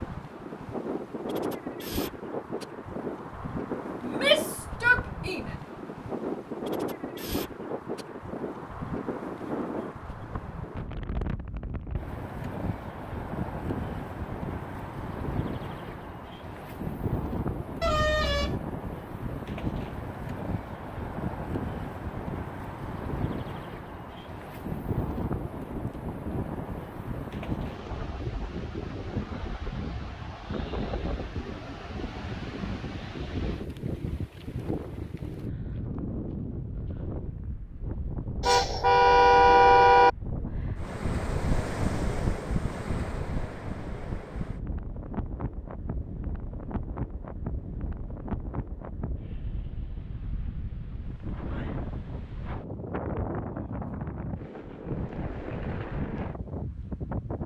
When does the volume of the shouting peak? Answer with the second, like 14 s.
4 s.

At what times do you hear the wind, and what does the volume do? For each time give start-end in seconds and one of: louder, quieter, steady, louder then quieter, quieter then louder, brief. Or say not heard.
0.0-57.4 steady.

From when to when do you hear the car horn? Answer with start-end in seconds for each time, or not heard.
17.8-18.6, 38.4-40.1.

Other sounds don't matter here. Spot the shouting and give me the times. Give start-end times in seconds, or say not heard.
4.0-5.5.